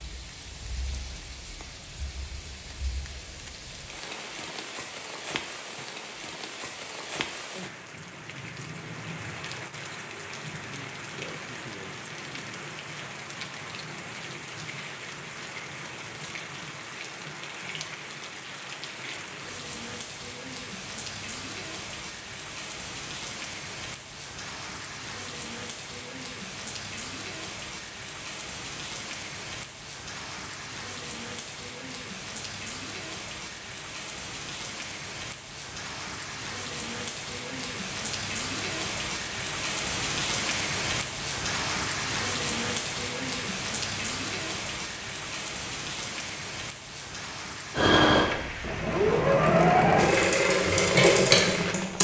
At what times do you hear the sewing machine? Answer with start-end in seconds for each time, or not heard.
47.7-51.9.